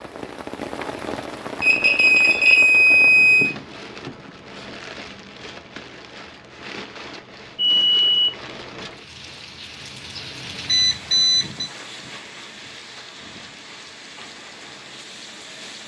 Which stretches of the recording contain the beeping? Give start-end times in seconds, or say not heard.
1.6-3.5, 7.5-8.8, 10.7-11.7.